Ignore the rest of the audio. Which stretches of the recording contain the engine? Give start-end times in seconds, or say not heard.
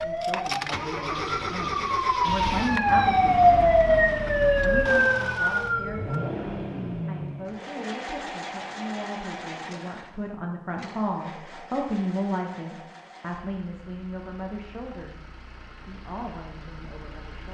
0.0-17.4.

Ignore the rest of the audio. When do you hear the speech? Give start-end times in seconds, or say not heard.
0.0-17.4.